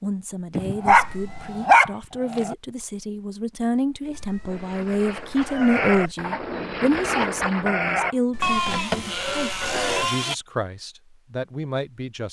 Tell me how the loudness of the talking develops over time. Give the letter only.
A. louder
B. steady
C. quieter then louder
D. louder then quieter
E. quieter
D.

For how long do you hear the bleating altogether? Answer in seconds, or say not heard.
6 s.